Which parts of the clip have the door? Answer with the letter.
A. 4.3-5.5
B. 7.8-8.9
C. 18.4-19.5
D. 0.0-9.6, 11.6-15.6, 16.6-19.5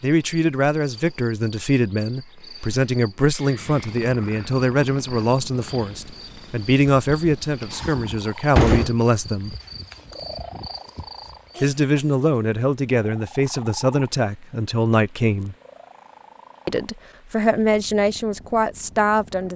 B.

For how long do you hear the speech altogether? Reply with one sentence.
The speech can be heard for 16 seconds in total.